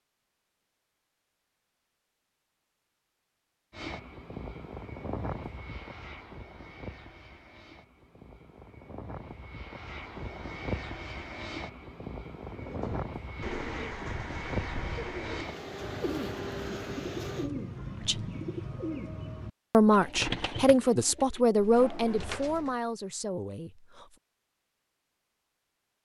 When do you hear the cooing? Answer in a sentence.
The cooing can be heard from 12.4 to 22.8 s.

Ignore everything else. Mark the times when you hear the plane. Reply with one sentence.
The plane can be heard from 3.7 to 17.5 s.